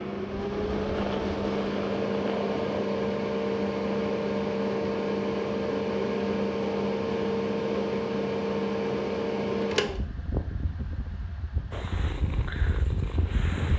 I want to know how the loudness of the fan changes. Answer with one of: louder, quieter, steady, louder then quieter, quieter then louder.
quieter.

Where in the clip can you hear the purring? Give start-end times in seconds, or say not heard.
0.0-2.8, 11.7-13.7.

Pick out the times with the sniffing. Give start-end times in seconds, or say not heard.
not heard.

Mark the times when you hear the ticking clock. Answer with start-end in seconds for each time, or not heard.
not heard.